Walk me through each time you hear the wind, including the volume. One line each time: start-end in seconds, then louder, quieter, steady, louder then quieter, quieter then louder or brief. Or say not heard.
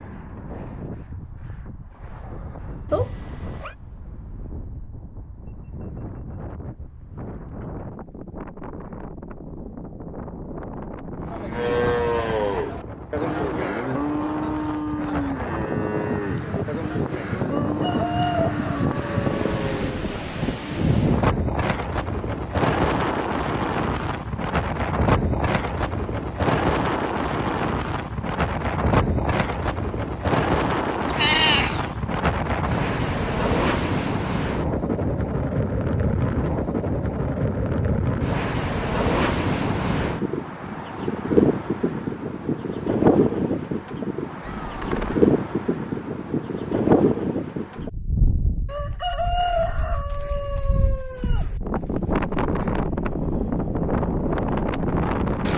0.0-55.5 louder.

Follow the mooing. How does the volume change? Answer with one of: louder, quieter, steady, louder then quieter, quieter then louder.
quieter.